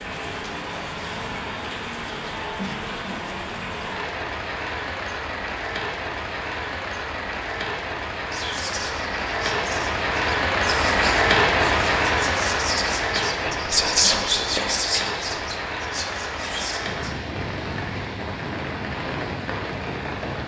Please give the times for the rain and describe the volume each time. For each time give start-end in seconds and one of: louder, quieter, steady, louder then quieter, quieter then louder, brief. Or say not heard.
0.0-20.4 louder then quieter.